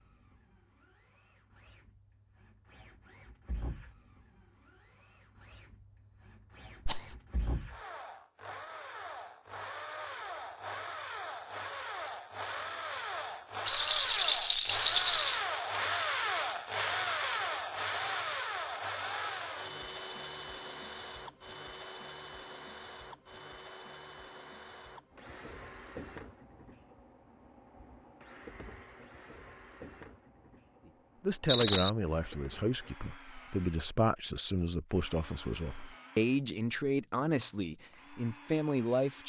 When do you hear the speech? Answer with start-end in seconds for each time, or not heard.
31.2-39.2.